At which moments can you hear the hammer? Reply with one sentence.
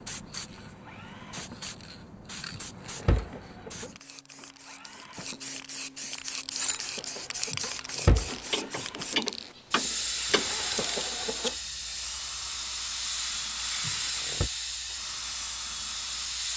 You can't hear the hammer here.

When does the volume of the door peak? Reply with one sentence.
The volume of the door peaks at 8 seconds.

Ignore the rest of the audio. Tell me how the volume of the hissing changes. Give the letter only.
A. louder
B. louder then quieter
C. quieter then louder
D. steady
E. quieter
A.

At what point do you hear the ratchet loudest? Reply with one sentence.
The loudest moment of the ratchet is at 9 seconds.